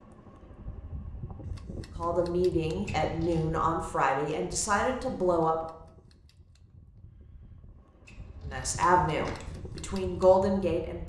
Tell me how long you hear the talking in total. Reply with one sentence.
The talking can be heard for 6 seconds in total.